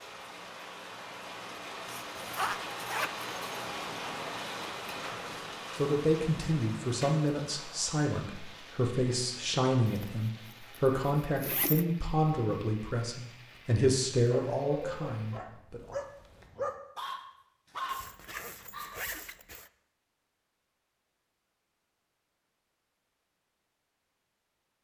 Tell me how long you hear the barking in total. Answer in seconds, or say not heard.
5 s.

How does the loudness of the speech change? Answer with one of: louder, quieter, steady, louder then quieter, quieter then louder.
steady.